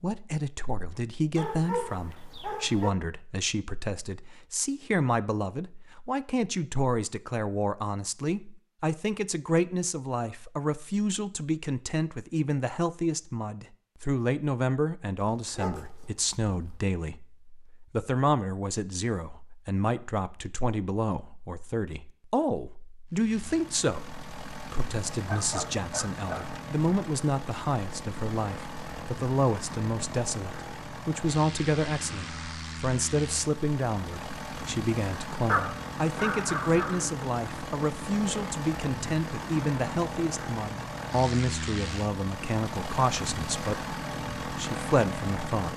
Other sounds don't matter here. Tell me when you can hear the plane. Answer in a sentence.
You can hear the plane from 23.1 to 45.7 s.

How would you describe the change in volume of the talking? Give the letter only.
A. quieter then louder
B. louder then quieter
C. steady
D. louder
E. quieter
C.